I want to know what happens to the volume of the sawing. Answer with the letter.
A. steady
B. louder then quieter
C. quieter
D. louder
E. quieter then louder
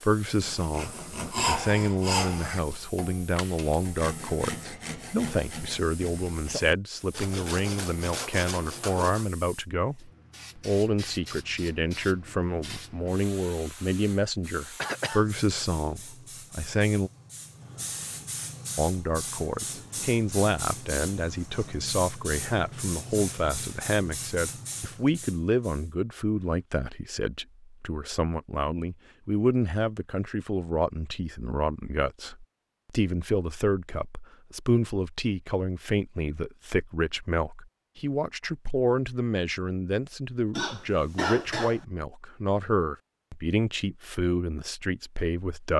E.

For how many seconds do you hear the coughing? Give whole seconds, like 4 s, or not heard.
2 s.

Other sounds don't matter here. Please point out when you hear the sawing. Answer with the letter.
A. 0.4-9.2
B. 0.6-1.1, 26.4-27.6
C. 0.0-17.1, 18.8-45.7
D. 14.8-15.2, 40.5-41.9
A.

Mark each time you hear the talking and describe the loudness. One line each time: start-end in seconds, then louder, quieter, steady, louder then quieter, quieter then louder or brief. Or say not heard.
0.0-17.1 steady
18.8-45.7 steady.